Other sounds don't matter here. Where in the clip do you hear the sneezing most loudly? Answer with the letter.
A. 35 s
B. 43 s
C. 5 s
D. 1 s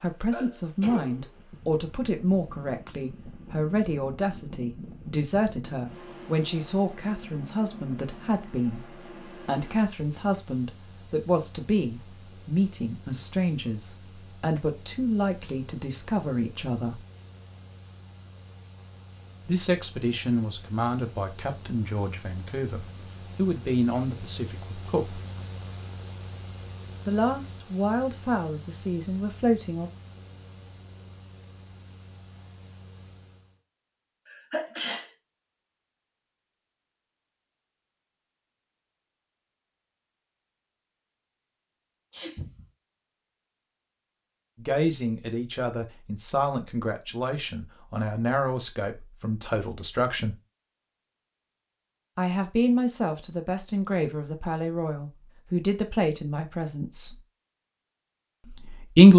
A.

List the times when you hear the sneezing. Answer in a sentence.
The sneezing can be heard from 0.3 to 1.4 s, from 34.5 to 35.0 s and from 42.1 to 42.6 s.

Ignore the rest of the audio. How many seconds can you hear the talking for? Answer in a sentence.
The talking can be heard for 37 seconds in total.